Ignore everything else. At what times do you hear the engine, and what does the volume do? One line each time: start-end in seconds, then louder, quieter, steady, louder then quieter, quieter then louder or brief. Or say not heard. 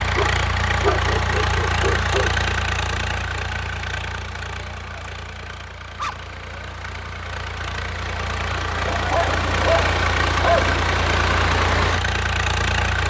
0.0-13.0 quieter then louder.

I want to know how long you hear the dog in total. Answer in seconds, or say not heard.
5 s.